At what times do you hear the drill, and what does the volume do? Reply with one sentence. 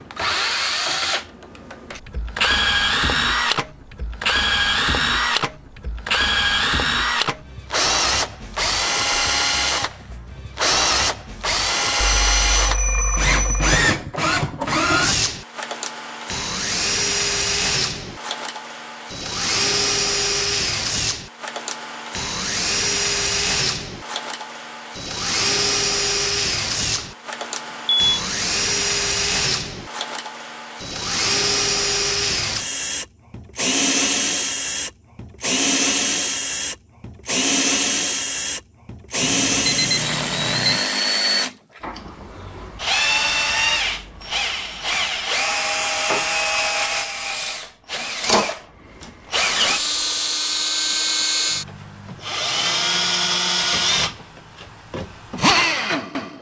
The drill can be heard from 0.0 to 56.3 s, at a steady volume.